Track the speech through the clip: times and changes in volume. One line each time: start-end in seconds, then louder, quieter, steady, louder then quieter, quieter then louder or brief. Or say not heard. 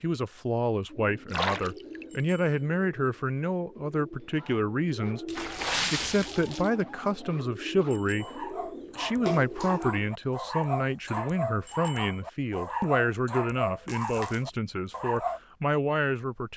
0.0-16.5 steady.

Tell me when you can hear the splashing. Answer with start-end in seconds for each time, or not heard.
1.3-2.2, 5.2-6.7, 9.2-9.8, 13.8-14.4.